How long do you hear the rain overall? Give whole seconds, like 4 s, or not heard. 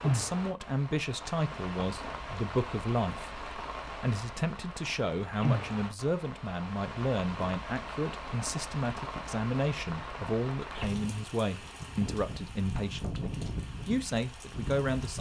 15 s.